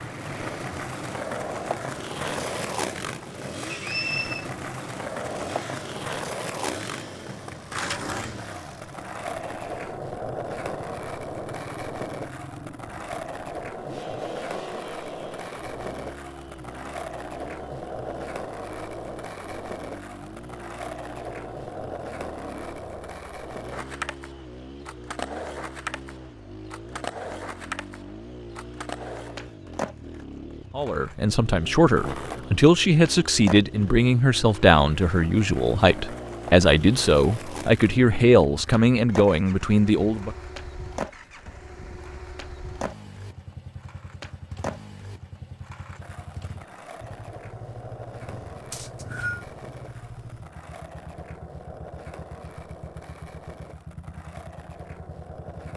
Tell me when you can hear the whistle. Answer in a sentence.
You can hear the whistle from 3.7 to 4.5 s and from 48.7 to 49.5 s.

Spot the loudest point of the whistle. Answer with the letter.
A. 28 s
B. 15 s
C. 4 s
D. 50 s
C.